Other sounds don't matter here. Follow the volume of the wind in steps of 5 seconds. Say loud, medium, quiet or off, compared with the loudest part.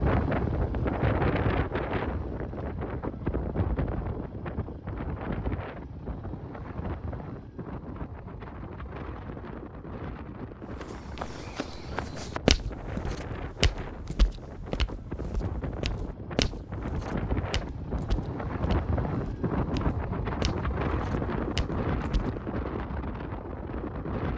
loud, medium, medium, loud, loud.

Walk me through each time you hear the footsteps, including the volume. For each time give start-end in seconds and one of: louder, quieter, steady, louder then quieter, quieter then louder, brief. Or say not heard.
10.8-22.4 quieter then louder.